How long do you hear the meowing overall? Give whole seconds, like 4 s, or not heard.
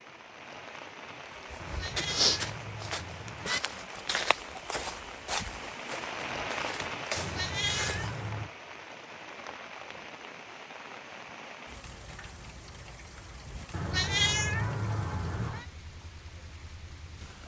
5 s.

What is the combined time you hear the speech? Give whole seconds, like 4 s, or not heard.
not heard.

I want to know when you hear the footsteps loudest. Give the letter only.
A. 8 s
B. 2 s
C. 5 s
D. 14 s
B.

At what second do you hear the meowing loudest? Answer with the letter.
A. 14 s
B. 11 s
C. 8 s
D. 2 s
A.